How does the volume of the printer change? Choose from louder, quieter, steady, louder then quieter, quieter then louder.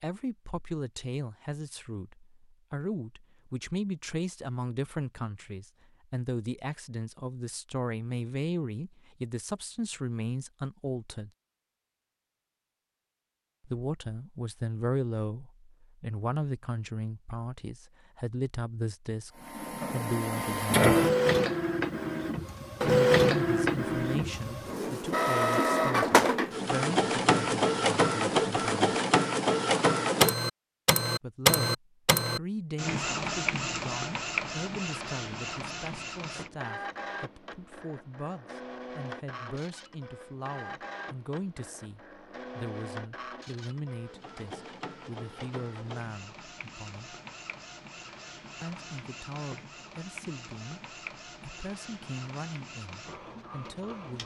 quieter.